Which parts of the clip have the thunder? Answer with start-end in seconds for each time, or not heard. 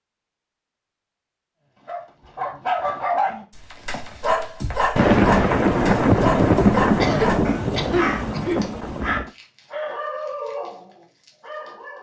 5.0-9.3.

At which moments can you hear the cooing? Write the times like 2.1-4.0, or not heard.
not heard.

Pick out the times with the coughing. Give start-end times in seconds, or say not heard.
7.0-8.7.